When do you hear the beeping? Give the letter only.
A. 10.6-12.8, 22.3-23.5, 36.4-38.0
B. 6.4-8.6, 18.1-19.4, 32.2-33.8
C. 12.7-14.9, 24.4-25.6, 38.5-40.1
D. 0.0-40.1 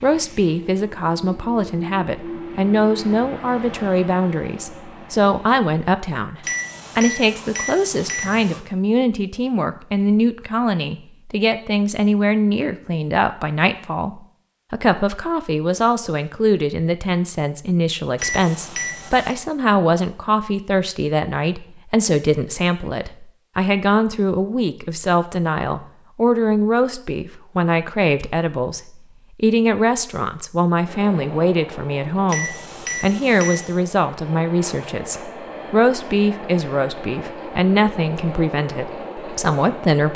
B.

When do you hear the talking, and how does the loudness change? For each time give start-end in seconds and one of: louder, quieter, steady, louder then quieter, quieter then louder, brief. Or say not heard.
0.0-40.1 steady.